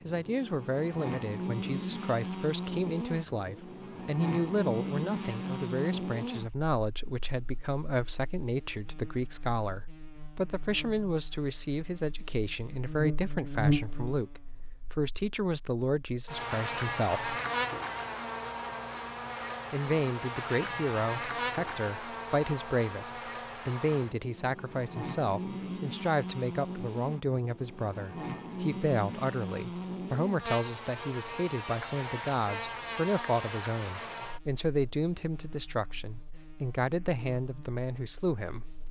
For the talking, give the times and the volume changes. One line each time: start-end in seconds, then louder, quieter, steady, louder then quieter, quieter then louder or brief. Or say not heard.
0.1-17.4 steady
19.7-38.7 steady.